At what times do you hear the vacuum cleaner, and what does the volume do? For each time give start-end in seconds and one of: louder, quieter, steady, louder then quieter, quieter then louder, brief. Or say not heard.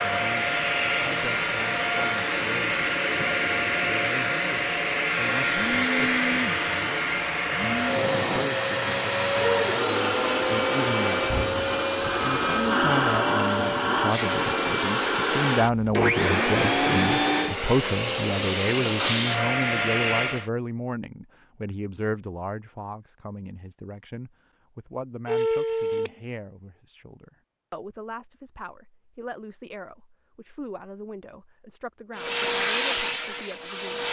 0.0-20.5 steady
32.1-34.0 brief.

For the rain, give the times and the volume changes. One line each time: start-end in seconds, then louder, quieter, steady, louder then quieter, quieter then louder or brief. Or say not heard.
not heard.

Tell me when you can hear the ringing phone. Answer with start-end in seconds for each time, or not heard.
11.3-13.2, 25.2-26.1.